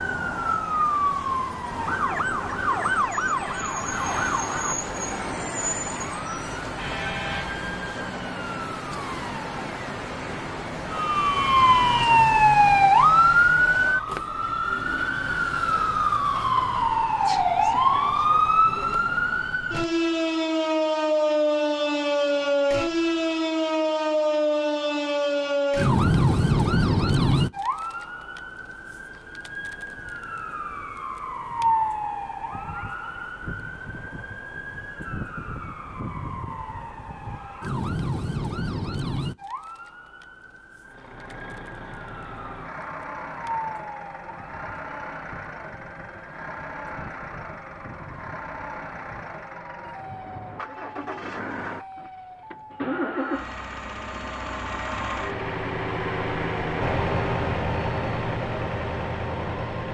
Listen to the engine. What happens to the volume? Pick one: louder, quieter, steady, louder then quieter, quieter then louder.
louder.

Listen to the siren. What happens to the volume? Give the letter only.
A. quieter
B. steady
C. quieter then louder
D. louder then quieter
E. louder
D.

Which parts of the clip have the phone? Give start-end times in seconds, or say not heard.
not heard.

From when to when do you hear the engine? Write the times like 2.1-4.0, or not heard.
40.9-59.8.